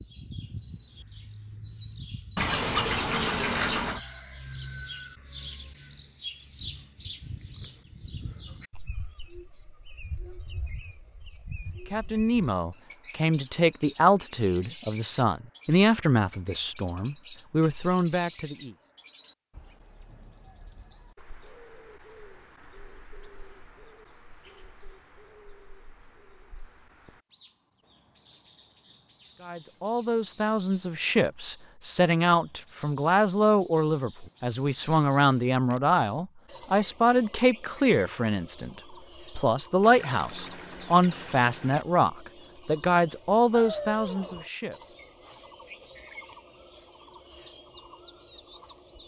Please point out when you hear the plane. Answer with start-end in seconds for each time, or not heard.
not heard.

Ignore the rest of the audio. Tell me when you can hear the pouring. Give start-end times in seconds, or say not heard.
2.4-4.0, 39.8-41.9.